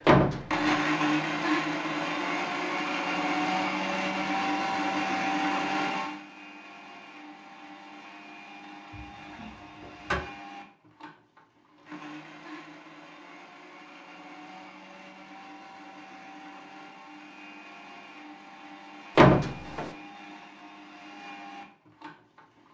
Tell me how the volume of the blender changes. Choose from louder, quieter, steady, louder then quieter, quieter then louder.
quieter.